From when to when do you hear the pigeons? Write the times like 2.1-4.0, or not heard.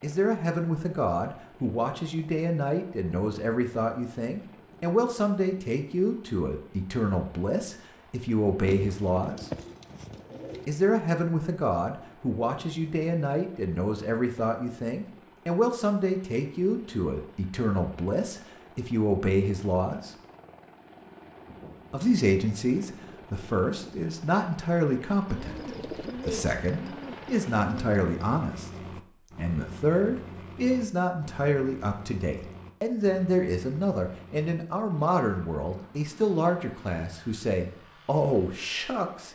8.7-10.7, 25.2-28.0.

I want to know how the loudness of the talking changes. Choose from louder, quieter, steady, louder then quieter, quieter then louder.
steady.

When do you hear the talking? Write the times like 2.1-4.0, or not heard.
0.0-9.5, 10.7-20.1, 21.9-28.7, 29.4-39.3.